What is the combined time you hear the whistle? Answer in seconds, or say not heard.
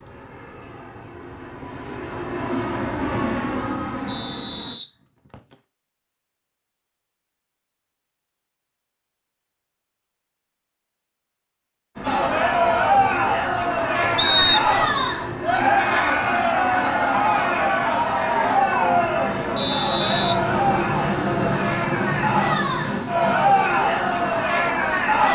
3 s.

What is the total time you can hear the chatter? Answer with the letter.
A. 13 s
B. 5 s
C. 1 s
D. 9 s
A.